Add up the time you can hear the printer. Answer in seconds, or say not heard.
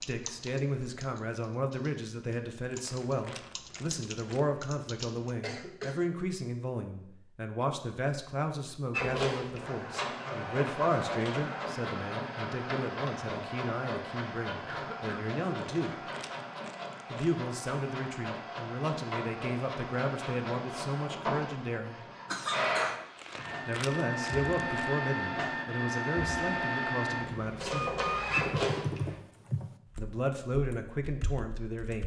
20 s.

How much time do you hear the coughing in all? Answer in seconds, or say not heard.
2 s.